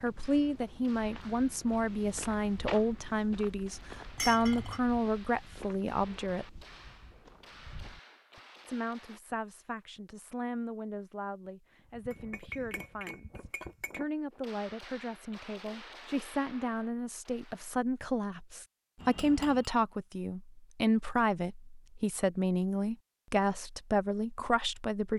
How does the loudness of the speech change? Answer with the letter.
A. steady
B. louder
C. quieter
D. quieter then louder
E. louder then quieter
D.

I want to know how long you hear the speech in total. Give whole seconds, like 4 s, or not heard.
23 s.